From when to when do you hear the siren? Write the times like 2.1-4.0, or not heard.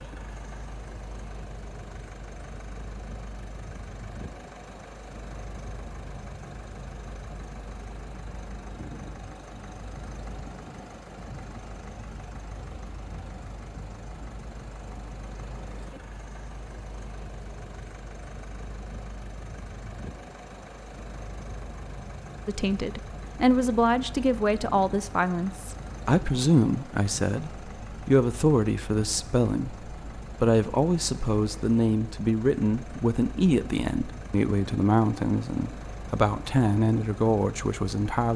not heard.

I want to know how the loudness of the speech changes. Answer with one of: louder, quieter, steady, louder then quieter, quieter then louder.
steady.